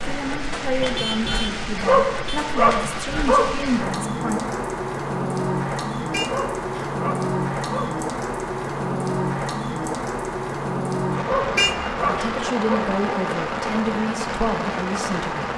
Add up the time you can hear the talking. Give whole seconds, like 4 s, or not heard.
8 s.